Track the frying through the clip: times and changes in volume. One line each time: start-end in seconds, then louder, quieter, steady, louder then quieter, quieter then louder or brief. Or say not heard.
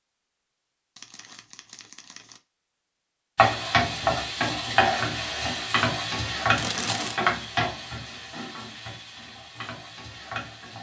3.4-10.7 quieter.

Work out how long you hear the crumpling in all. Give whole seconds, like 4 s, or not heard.
2 s.